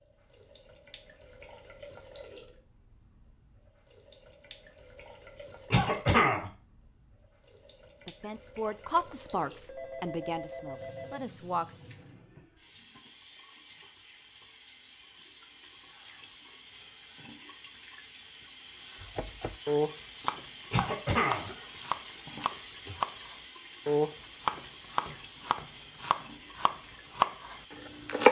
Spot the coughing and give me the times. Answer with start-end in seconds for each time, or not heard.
5.7-6.5, 20.7-21.5.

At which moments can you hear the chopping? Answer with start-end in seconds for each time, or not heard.
19.0-28.2.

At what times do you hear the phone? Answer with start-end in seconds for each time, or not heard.
9.7-11.2.